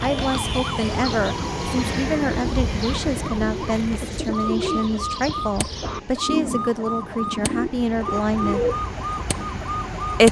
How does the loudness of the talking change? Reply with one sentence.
The loudness of the talking stays about the same.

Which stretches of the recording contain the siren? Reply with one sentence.
The siren can be heard from 0.0 to 10.2 s.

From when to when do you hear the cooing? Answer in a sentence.
The cooing can be heard from 0.0 to 8.9 s.